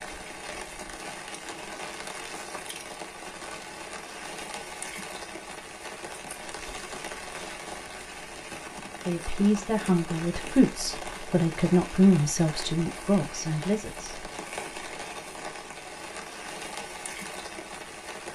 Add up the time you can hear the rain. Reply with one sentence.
The rain can be heard for 18 seconds in total.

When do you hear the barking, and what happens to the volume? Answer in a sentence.
You can't hear the barking here.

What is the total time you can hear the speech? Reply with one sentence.
The speech can be heard for 5 seconds in total.